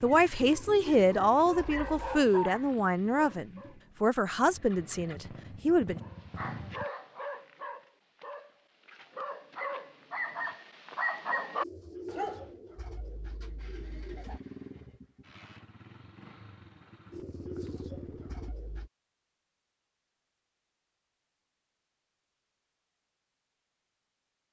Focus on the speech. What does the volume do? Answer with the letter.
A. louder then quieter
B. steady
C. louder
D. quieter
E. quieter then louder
D.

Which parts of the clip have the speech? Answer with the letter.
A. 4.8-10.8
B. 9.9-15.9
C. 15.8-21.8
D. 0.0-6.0
D.